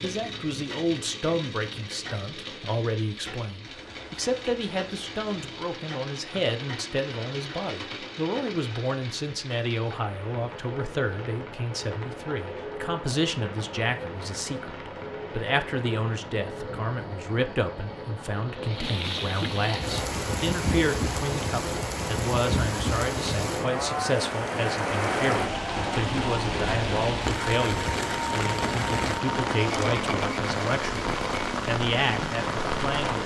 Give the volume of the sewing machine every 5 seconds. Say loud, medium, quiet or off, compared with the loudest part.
medium, medium, medium, medium, loud, loud, loud.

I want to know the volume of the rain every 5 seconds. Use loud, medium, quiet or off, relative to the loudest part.
quiet, quiet, quiet, medium, loud, loud, loud.